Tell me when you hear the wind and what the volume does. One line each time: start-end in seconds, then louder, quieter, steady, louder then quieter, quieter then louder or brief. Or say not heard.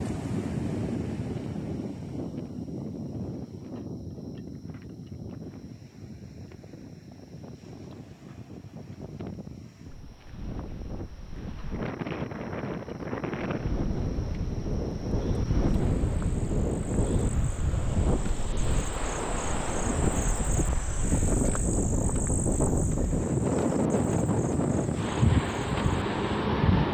0.0-26.8 quieter then louder.